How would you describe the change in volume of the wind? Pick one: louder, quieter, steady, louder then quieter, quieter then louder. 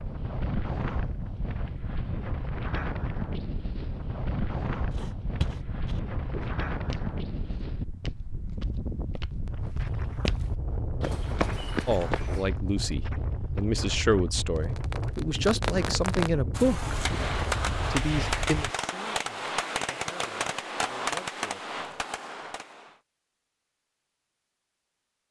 steady.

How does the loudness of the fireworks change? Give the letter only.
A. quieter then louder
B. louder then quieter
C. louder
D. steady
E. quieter
D.